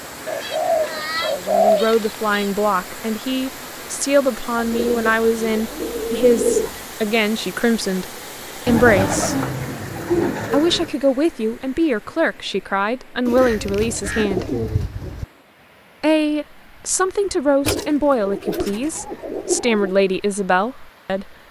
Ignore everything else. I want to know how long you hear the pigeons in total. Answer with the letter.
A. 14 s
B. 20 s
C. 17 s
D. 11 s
D.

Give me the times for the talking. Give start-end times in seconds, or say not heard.
1.3-9.3, 10.5-14.6, 16.0-21.3.